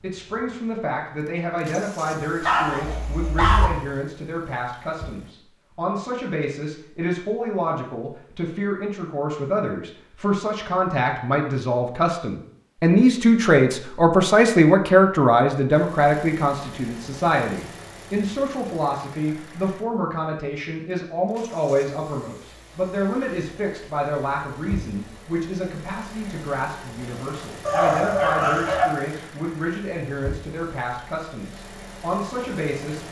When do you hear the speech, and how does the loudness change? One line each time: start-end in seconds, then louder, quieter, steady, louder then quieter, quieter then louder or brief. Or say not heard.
0.0-33.0 louder then quieter.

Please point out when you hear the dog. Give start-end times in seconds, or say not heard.
2.4-3.7, 27.6-28.9.